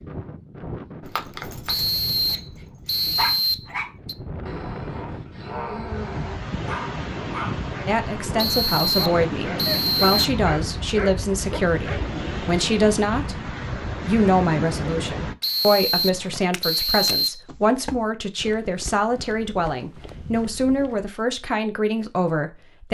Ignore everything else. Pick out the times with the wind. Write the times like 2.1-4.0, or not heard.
0.0-15.3.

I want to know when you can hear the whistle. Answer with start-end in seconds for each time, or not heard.
1.6-4.2, 8.3-10.3, 15.4-17.4.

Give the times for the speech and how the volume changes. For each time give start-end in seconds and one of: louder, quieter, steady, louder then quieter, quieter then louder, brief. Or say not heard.
7.8-22.8 steady.